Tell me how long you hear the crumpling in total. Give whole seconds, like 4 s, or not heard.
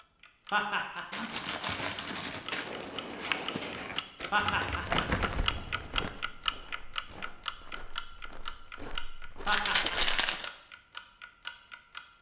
4 s.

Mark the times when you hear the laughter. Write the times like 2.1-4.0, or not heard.
0.5-1.4, 4.3-5.0, 9.4-10.2.